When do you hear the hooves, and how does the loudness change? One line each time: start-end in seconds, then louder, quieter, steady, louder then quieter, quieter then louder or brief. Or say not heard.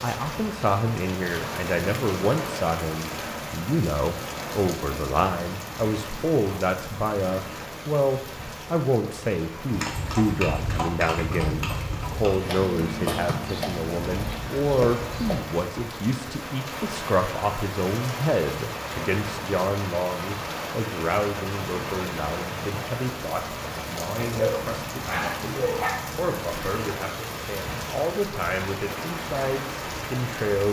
9.7-15.4 steady.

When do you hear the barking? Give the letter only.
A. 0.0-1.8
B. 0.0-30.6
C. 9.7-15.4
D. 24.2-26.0
D.